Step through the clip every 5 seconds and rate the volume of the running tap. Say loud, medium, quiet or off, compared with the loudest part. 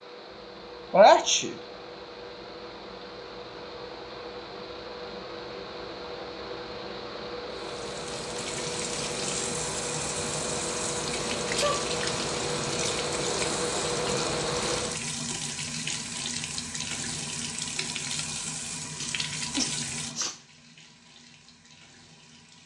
off, loud, loud, loud, quiet.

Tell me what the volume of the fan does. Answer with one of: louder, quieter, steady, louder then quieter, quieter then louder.
louder.